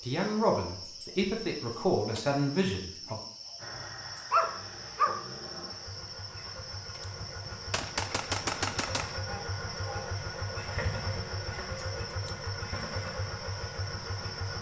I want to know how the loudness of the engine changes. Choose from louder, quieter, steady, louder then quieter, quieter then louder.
louder.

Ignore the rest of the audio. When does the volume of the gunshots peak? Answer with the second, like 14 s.
8 s.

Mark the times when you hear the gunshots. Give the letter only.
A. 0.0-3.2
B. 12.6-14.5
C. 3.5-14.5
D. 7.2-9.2
D.